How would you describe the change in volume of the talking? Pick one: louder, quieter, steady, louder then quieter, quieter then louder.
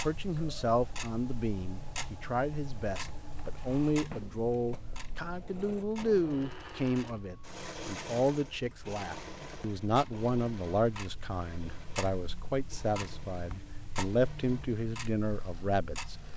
steady.